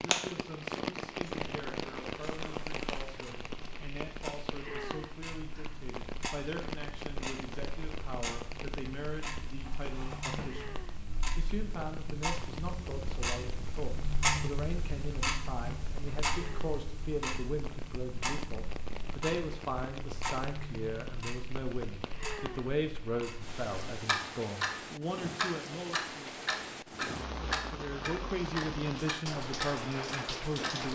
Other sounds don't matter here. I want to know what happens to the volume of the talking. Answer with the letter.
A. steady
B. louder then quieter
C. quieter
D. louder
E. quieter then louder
D.